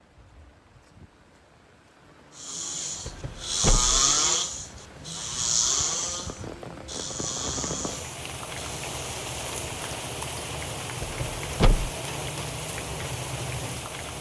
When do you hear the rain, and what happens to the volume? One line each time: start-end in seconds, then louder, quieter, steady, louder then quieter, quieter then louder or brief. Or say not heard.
0.0-14.1 louder.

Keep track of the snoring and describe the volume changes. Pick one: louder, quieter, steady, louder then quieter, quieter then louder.
quieter.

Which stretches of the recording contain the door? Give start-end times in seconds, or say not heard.
3.0-4.0, 11.0-11.9.